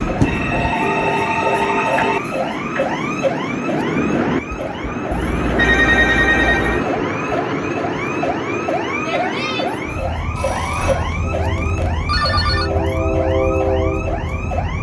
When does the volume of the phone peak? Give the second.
6 s.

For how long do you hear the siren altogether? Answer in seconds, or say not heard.
15 s.